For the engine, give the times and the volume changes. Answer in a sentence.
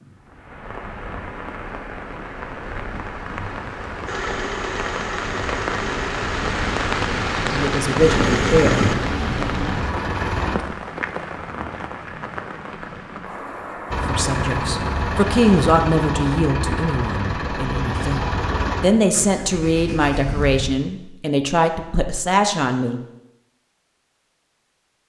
The engine can be heard from 4.0 to 10.6 s, getting louder then quieter; and from 13.9 to 20.8 s, getting quieter.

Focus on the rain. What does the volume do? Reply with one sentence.
The volume of the rain goes up, then down.